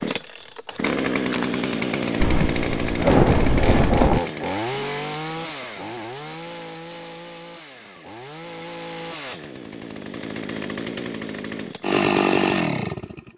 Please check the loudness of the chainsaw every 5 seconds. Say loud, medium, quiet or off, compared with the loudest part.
loud, medium, loud.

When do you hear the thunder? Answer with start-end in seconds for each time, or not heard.
2.1-4.2.